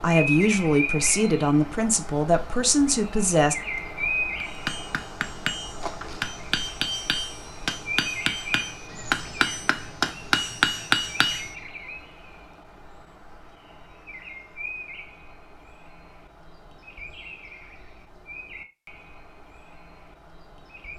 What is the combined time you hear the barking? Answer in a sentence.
You can't hear the barking here.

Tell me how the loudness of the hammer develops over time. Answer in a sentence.
The volume of the hammer goes up.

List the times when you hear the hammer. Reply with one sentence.
The hammer can be heard from 4.4 to 11.5 s.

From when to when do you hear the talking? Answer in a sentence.
The talking can be heard from 0.0 to 3.5 s.